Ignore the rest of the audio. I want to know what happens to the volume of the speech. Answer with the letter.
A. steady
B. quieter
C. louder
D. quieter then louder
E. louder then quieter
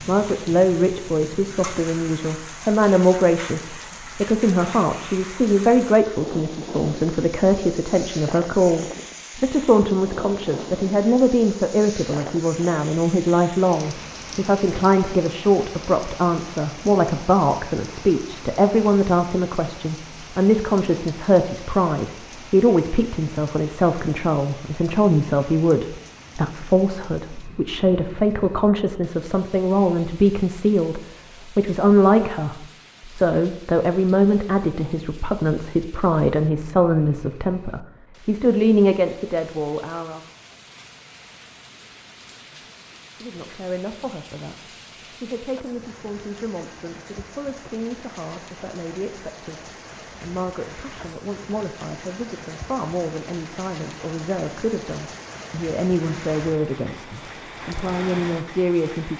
B.